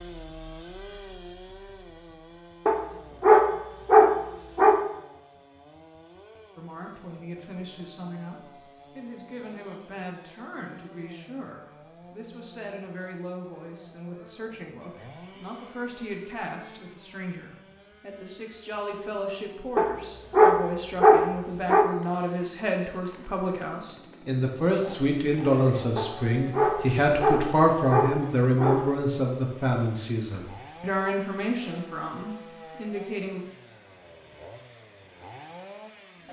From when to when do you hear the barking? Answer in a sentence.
You can hear the barking from 2.6 to 4.8 s, from 19.8 to 21.9 s and from 25.9 to 28.9 s.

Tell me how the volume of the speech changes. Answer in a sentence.
The volume of the speech goes up.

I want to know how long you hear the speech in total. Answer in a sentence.
The speech can be heard for 27 seconds in total.